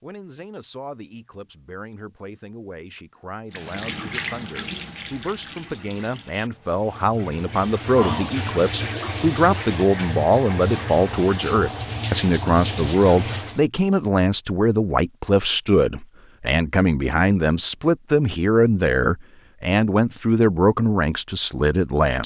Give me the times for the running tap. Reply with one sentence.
The running tap can be heard from 3.5 to 13.6 s.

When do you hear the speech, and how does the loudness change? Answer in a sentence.
You can hear the speech from 0.0 to 22.2 s, getting louder.